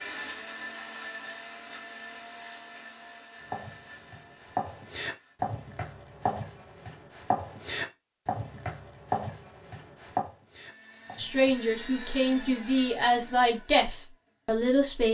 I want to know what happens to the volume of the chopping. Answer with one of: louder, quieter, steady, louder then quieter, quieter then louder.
steady.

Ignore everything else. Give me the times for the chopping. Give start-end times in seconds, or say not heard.
3.4-11.6.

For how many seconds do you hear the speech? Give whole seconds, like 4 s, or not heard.
4 s.